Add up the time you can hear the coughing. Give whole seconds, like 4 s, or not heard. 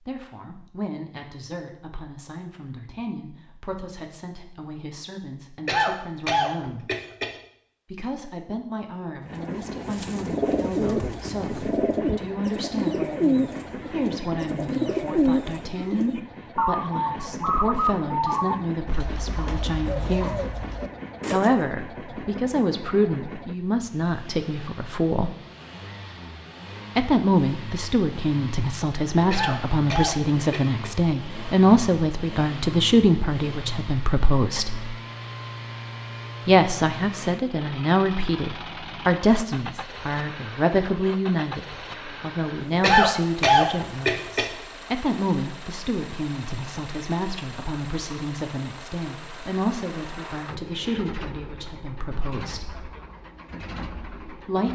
5 s.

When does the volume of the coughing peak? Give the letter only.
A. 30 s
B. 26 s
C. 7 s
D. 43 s
D.